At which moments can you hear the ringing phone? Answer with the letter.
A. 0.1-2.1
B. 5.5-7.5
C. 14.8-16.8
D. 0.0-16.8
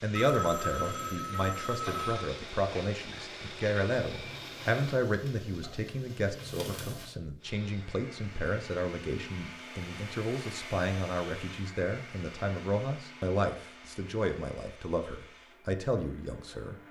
A.